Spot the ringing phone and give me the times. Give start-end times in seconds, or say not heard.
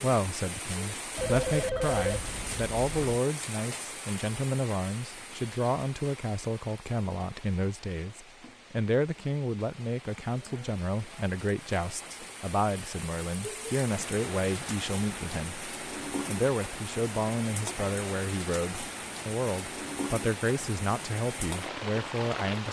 1.1-3.1.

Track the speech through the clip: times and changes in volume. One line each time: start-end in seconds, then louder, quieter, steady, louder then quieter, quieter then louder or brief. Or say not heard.
0.0-22.6 steady.